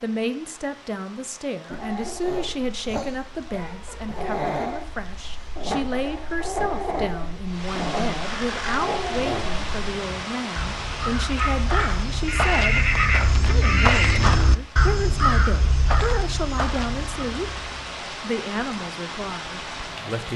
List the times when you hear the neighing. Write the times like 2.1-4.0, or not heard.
12.2-14.3.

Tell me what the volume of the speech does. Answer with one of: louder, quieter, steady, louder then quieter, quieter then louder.
steady.